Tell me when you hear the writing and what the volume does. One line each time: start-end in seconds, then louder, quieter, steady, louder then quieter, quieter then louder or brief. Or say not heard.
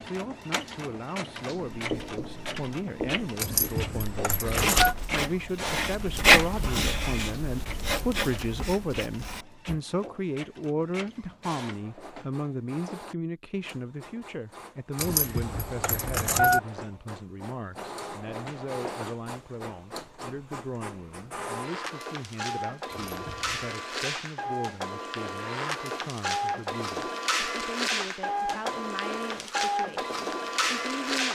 1.7-9.8 louder then quieter.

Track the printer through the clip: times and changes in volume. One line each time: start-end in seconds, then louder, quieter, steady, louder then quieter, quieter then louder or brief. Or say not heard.
0.0-31.2 quieter then louder.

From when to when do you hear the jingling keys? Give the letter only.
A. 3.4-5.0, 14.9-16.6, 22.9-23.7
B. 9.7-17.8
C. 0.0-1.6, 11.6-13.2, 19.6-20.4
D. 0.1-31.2
A.